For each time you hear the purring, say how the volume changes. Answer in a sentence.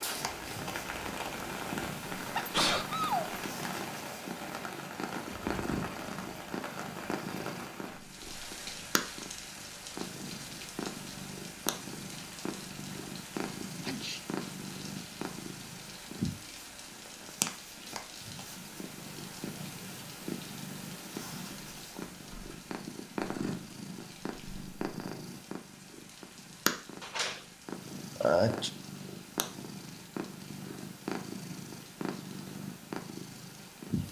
The purring can be heard from 0.0 to 34.0 s, at a steady volume.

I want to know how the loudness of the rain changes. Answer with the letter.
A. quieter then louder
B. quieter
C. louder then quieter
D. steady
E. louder
B.